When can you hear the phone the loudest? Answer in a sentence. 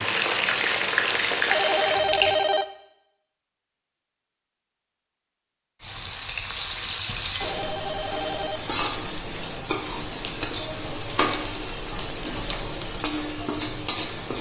The volume of the phone peaks at 2 seconds.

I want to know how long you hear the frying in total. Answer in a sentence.
The frying can be heard for 11 seconds in total.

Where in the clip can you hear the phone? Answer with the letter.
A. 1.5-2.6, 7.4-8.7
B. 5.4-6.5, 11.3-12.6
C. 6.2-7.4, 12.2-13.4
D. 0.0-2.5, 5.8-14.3
A.